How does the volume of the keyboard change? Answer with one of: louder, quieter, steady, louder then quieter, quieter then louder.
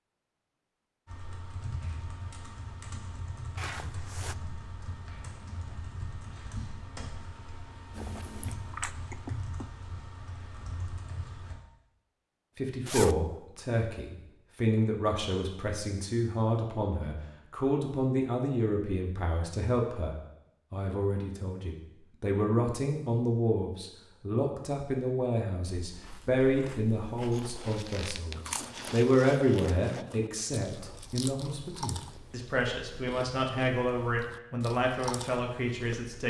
steady.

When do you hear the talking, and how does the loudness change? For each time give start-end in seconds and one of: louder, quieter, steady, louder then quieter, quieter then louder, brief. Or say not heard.
12.6-36.2 steady.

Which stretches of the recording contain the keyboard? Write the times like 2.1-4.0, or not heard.
1.1-11.6.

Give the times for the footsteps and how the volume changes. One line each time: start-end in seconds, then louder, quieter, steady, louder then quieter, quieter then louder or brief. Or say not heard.
not heard.